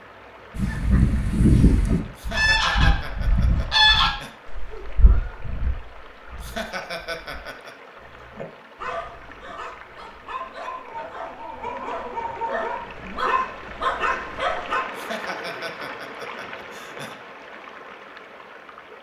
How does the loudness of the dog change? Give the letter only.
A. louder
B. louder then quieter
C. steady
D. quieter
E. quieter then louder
A.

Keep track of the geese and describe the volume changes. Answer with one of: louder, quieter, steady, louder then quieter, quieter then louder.
quieter.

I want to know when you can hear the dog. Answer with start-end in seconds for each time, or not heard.
8.0-14.8.